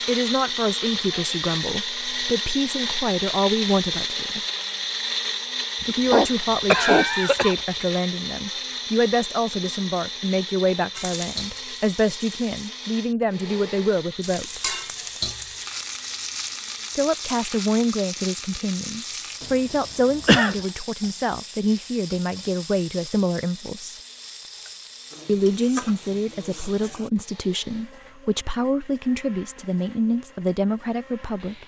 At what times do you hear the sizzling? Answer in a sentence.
You can hear the sizzling from 10.9 to 12.7 s and from 14.2 to 27.1 s.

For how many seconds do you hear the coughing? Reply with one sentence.
You can hear the coughing for 3 seconds altogether.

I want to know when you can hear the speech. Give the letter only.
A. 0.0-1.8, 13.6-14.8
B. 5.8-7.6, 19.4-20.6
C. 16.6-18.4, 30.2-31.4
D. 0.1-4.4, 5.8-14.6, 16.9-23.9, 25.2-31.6
D.